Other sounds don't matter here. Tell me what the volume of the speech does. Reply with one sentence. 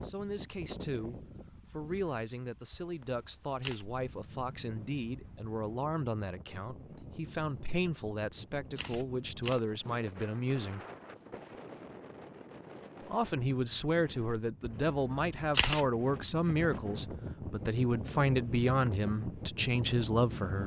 The loudness of the speech goes up.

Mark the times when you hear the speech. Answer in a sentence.
You can hear the speech from 0.0 to 10.8 s and from 13.1 to 20.6 s.